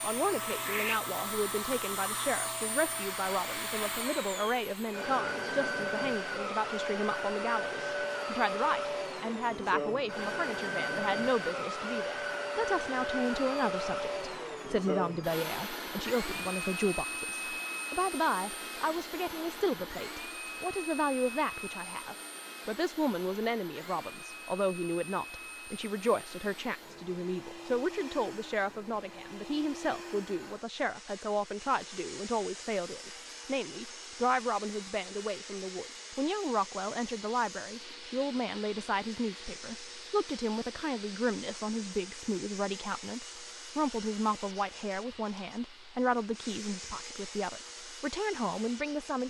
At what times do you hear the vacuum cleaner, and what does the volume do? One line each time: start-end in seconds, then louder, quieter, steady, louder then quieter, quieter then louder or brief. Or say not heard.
0.0-49.2 quieter.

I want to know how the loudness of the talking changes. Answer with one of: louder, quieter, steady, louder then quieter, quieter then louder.
steady.